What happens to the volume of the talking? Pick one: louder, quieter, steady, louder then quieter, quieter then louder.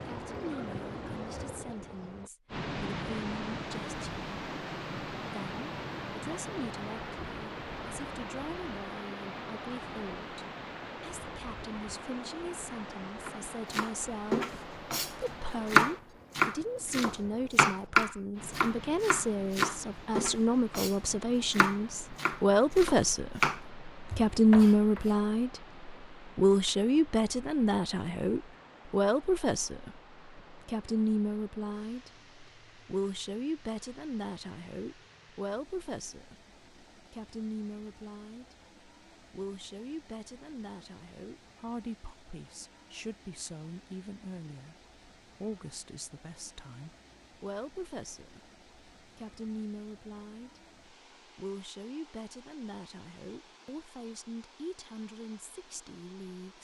louder then quieter.